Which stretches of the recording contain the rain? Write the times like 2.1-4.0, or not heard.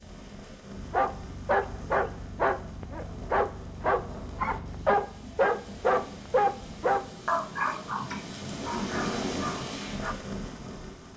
0.0-11.1.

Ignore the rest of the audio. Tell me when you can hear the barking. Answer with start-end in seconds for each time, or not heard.
0.8-10.2.